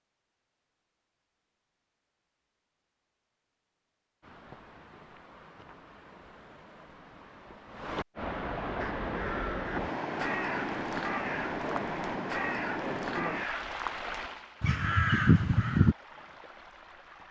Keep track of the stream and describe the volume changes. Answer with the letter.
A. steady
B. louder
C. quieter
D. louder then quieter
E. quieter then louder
D.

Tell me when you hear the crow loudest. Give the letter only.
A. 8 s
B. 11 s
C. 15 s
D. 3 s
C.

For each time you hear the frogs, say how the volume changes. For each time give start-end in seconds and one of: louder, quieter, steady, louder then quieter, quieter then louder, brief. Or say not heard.
not heard.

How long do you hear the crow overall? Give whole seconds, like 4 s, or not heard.
7 s.